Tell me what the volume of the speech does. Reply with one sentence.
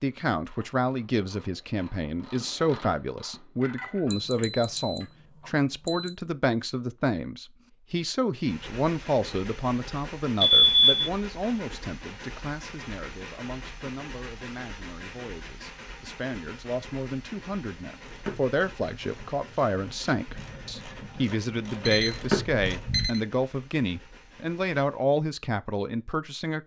The loudness of the speech goes down, then up.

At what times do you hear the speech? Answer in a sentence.
You can hear the speech from 0.0 to 26.6 s.